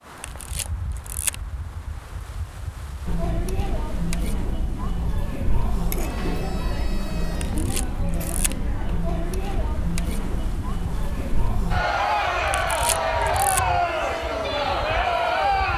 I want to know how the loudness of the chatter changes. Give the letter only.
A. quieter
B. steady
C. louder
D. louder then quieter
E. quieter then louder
C.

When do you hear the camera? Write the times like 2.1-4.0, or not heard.
0.2-1.4, 7.3-8.6, 12.4-13.6.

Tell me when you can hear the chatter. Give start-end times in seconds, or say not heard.
3.0-15.7.